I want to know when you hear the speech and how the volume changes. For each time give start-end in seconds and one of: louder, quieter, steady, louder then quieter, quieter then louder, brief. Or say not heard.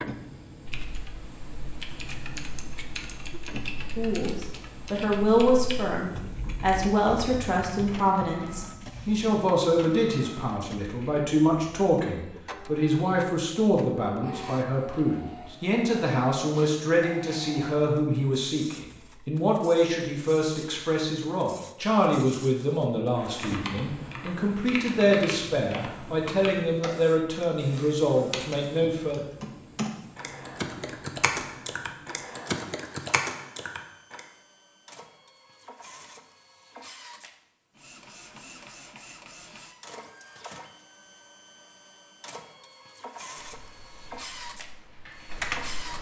4.0-29.2 steady.